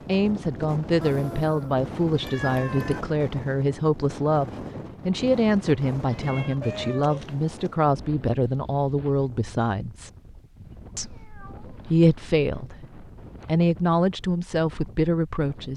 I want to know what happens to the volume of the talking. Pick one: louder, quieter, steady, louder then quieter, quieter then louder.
steady.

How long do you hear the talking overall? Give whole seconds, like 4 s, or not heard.
15 s.